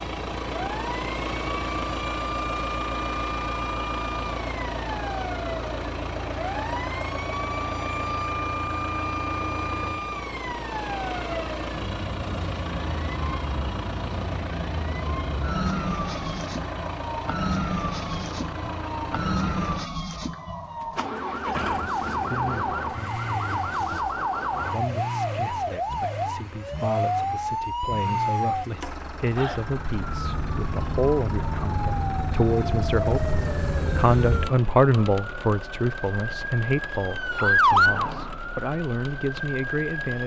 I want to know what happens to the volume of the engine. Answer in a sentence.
The volume of the engine goes down.